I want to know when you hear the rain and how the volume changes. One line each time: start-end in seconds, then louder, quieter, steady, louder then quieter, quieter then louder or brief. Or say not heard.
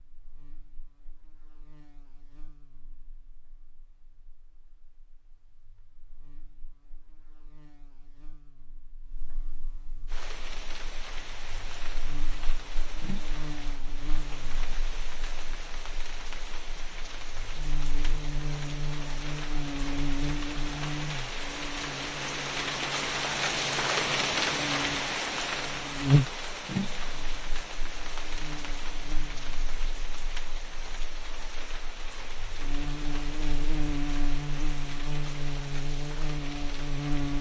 10.1-37.3 louder then quieter.